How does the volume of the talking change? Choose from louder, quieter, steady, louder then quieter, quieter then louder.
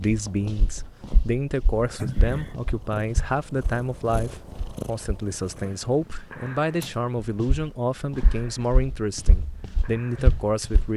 steady.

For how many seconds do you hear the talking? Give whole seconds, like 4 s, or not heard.
11 s.